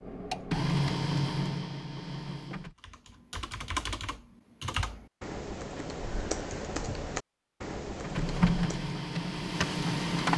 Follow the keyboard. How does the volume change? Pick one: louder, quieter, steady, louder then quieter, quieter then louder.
steady.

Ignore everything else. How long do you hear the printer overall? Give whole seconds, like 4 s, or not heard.
5 s.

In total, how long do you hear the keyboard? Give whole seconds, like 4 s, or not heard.
6 s.